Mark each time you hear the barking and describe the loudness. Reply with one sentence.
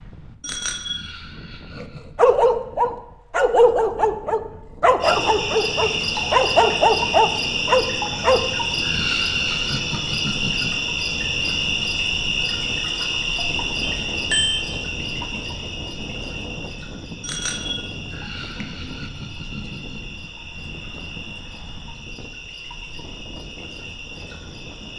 The barking can be heard from 1.8 to 8.4 s, at a steady volume.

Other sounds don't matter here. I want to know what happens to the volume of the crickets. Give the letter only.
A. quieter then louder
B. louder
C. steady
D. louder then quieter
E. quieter
E.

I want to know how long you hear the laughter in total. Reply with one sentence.
You can hear the laughter for 5 seconds altogether.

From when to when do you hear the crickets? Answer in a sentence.
The crickets can be heard from 5.0 to 24.9 s.